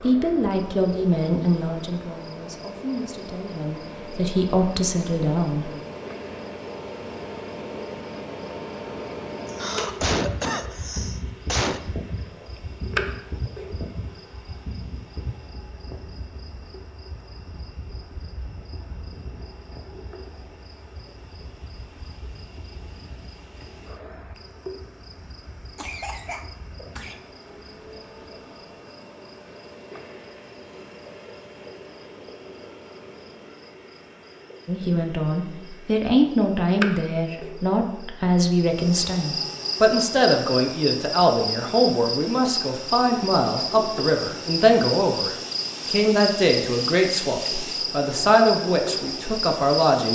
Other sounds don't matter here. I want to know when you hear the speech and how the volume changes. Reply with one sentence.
You can hear the speech from 0.0 to 5.7 s, getting quieter then louder; and from 34.6 to 50.0 s, at a steady volume.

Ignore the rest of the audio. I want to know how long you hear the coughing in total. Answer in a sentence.
You can hear the coughing for 4 seconds altogether.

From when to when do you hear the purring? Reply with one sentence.
The purring can't be heard in this clip.